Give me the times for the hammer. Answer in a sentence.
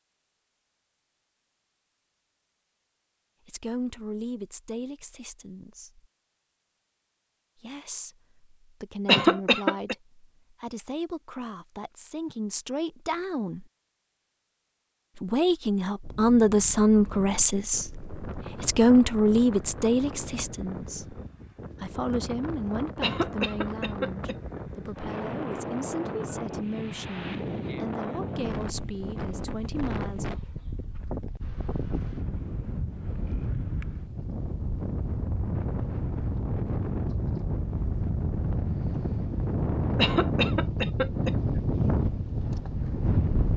The hammer can't be heard in this clip.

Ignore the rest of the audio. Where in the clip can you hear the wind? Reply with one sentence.
The wind can be heard from 16.0 to 43.5 s.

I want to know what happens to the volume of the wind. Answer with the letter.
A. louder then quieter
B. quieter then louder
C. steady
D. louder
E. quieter
D.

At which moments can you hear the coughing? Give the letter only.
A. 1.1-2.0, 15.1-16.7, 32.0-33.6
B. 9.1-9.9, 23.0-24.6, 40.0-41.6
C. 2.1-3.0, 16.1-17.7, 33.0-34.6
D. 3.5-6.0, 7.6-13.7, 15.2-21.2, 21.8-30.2
B.